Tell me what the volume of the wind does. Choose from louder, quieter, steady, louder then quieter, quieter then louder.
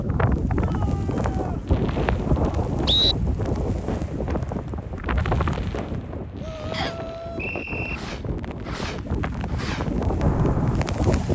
quieter then louder.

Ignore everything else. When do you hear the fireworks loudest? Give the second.
10 s.